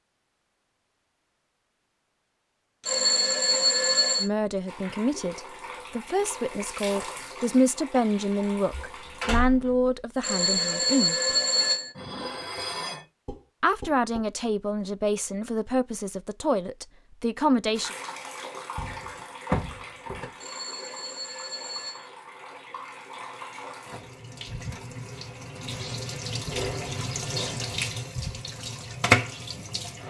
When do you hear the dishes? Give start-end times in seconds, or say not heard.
11.2-14.2.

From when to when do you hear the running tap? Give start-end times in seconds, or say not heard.
4.7-9.2, 17.7-30.0.